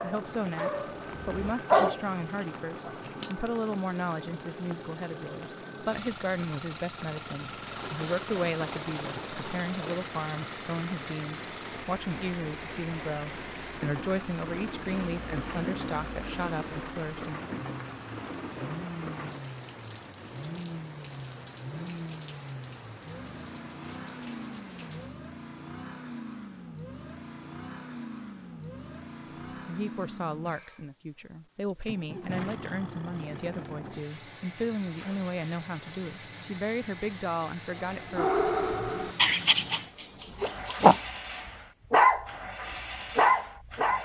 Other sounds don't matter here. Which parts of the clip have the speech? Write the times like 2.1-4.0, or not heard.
0.0-17.4, 29.6-38.3.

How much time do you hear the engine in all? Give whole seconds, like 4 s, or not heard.
44 s.